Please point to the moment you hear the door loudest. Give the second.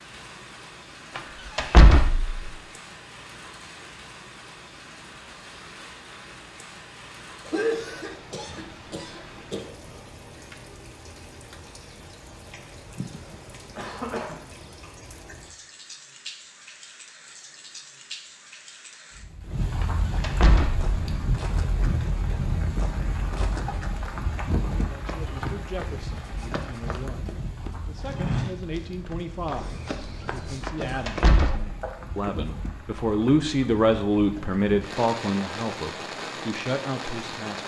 2 s.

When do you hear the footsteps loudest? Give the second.
28 s.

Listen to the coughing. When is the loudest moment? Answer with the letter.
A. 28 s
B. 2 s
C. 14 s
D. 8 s
D.